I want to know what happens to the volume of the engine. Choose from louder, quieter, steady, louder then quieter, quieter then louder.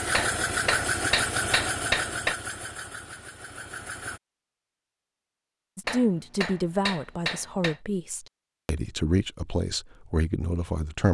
quieter.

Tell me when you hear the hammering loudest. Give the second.
2 s.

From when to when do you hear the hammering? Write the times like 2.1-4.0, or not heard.
0.1-2.4, 5.8-7.8.